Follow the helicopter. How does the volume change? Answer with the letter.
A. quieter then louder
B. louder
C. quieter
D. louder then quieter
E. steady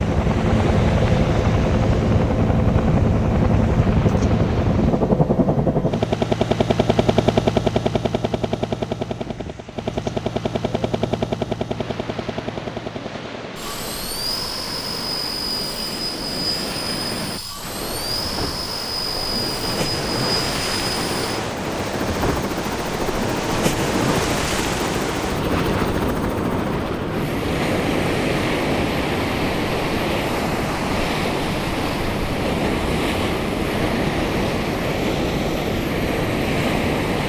C.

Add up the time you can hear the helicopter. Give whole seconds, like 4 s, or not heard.
37 s.